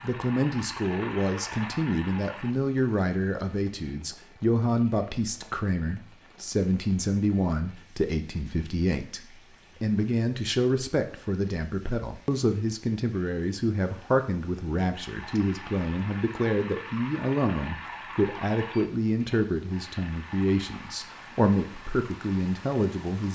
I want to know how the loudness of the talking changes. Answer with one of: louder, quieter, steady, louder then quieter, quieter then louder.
steady.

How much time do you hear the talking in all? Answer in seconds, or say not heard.
23 s.